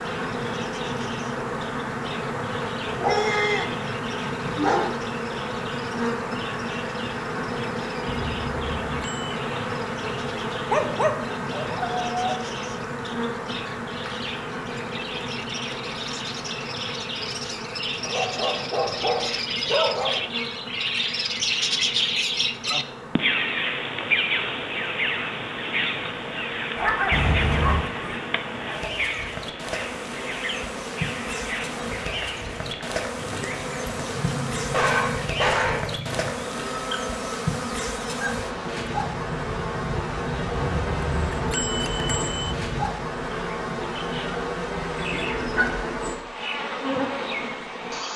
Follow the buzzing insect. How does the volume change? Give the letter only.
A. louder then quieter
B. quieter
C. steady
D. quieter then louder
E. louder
D.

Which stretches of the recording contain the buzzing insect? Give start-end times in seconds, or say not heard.
0.0-48.1.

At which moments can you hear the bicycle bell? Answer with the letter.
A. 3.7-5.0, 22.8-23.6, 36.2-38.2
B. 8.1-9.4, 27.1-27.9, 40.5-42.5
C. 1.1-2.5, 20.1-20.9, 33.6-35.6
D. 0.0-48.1
B.